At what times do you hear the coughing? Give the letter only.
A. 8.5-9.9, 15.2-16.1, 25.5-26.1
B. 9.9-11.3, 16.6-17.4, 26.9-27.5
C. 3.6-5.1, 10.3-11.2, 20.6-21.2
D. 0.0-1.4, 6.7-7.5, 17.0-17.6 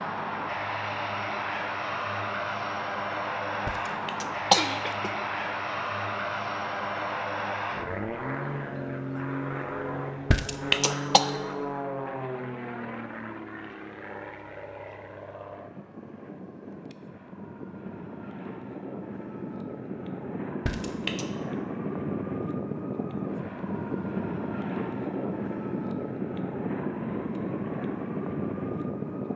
C.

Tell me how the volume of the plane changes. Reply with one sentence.
The volume of the plane goes down, then up.